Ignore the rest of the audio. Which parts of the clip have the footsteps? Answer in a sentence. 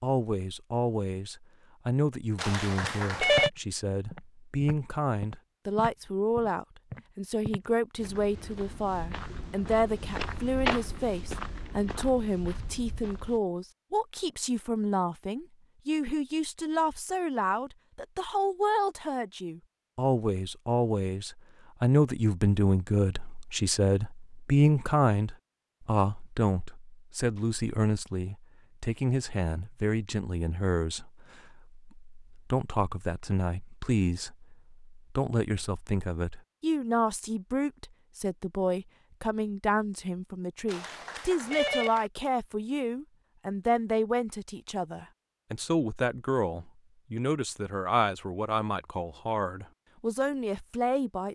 You can hear the footsteps from 2.8 to 13.4 s.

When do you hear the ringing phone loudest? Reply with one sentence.
The volume of the ringing phone peaks at 3 seconds.